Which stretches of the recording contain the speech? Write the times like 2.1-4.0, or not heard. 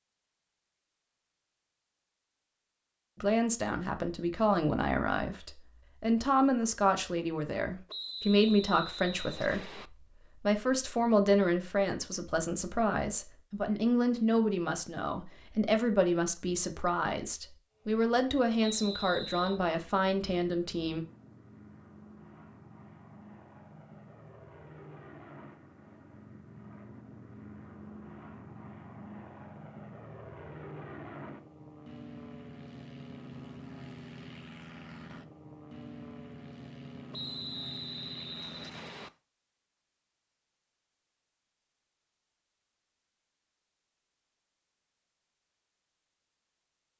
3.2-21.1.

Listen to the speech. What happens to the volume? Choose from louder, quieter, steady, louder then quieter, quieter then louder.
steady.